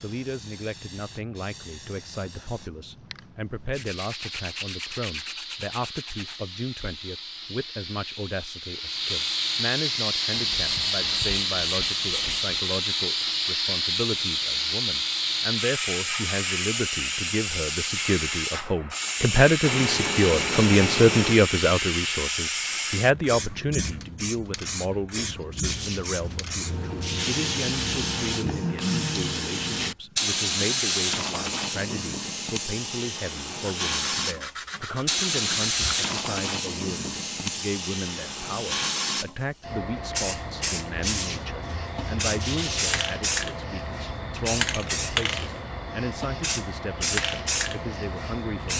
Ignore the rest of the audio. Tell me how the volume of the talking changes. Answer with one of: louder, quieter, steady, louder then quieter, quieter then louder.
louder then quieter.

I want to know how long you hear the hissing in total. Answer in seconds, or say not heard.
49 s.